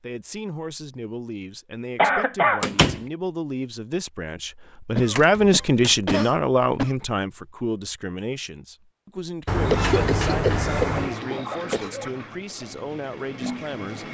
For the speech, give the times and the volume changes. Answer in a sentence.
The speech can be heard from 0.0 to 14.0 s, getting louder then quieter.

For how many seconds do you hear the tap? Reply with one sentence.
The tap can be heard for 3 seconds in total.